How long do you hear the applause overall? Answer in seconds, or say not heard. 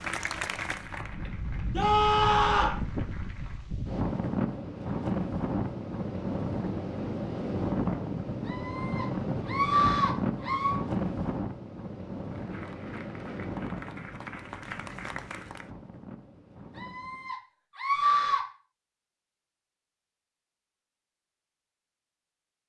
7 s.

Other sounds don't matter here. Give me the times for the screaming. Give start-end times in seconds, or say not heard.
1.7-2.8, 8.4-10.8, 16.8-18.4.